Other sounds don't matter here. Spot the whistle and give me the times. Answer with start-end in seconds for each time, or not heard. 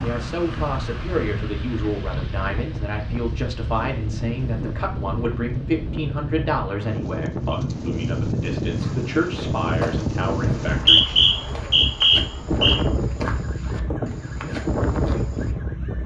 10.7-12.8.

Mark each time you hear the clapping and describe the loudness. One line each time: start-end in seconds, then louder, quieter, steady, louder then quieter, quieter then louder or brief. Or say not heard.
not heard.